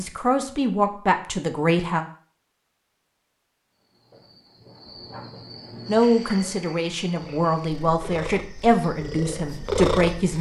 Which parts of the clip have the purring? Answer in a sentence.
The purring can be heard from 7.2 to 10.3 s.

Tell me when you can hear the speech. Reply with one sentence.
The speech can be heard from 0.0 to 2.0 s and from 5.8 to 10.3 s.